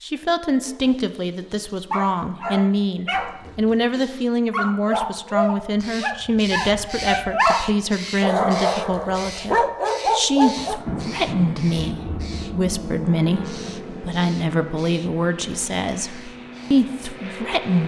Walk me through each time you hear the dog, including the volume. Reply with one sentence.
The dog can be heard from 0.7 to 10.8 s, getting louder.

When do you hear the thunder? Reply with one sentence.
You can hear the thunder from 10.6 to 12.3 s.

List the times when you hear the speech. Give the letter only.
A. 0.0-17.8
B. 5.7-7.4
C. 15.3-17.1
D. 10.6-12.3
A.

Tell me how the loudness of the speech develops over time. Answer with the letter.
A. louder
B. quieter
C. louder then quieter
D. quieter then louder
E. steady
E.